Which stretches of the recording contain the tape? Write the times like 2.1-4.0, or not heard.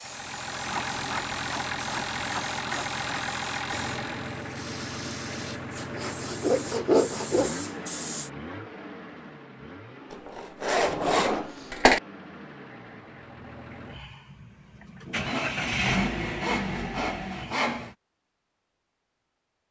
not heard.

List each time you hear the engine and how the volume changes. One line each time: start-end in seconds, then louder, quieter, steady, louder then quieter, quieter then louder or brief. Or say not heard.
0.0-17.9 quieter then louder.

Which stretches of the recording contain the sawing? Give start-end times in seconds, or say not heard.
0.7-3.2, 5.8-7.5, 10.3-12.0, 15.1-17.9.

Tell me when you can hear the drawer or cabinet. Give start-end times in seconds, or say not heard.
10.8-11.6.